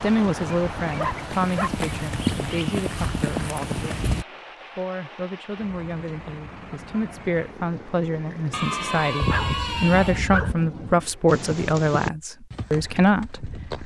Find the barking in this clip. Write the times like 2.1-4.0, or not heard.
0.8-1.7, 8.5-10.6.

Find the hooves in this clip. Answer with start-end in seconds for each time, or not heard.
0.0-4.2, 11.2-13.8.